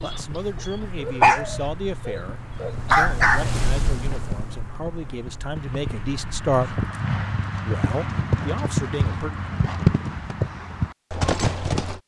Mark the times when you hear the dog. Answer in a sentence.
You can hear the dog from 0.0 to 3.5 s.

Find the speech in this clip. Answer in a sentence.
The speech can be heard from 0.0 to 6.7 s and from 7.7 to 9.3 s.